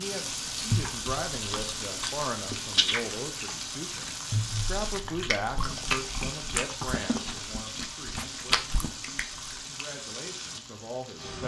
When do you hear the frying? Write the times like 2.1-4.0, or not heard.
0.0-11.4.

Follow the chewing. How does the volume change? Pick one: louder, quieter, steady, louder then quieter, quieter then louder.
louder.